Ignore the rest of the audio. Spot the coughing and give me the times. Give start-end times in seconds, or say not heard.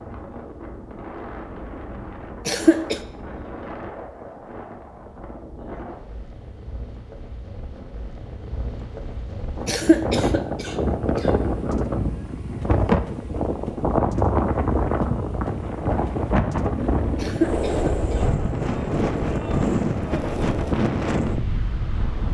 2.5-3.0, 9.7-11.3, 17.1-18.2.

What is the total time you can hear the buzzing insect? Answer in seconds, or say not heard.
not heard.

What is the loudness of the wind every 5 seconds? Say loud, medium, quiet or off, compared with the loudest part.
quiet, quiet, loud, loud, loud.